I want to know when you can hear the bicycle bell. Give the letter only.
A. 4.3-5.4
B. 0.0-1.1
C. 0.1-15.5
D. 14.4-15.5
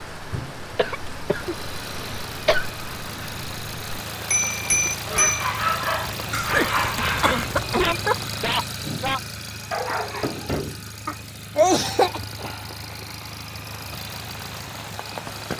A.